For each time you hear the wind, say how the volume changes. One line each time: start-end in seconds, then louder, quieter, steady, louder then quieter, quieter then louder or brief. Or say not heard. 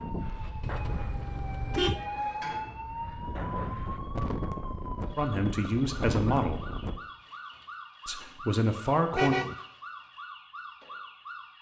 0.0-7.0 quieter then louder.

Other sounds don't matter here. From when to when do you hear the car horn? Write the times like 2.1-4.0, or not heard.
0.6-2.0, 9.1-9.6.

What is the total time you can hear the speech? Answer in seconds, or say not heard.
3 s.